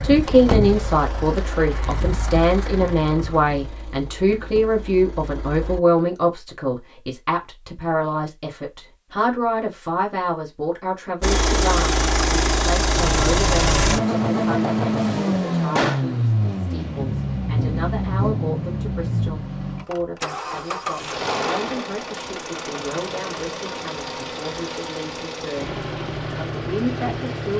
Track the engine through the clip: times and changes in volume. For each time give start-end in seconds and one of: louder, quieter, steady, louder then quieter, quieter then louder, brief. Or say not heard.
0.0-5.8 quieter
11.2-27.5 quieter.